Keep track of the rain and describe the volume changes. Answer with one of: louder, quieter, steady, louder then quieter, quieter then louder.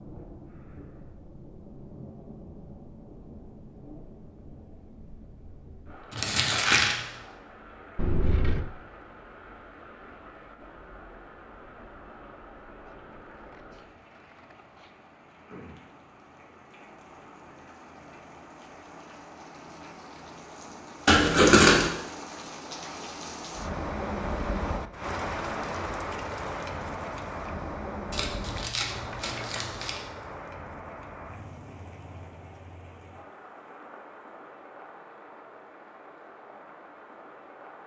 louder then quieter.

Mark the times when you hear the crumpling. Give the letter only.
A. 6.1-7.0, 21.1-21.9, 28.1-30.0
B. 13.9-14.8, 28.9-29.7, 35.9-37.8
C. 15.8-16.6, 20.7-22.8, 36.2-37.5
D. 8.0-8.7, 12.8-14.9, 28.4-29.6
A.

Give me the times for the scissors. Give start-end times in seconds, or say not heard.
8.0-8.7, 12.8-14.9, 28.4-29.6.